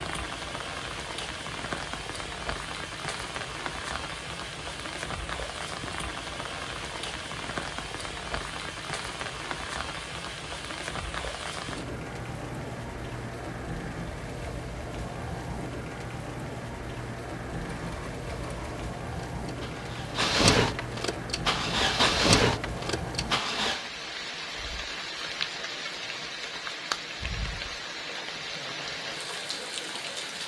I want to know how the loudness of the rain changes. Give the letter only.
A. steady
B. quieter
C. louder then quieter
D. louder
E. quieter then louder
A.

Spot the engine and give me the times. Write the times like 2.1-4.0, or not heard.
17.6-23.9.